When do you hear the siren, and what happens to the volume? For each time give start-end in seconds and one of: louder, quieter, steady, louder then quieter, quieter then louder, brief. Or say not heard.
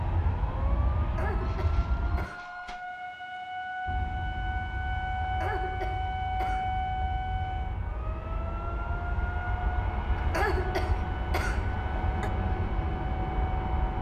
0.0-13.9 louder then quieter.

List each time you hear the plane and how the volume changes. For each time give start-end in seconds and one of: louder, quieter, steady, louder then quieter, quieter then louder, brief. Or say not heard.
0.0-2.3 brief
3.9-13.9 louder.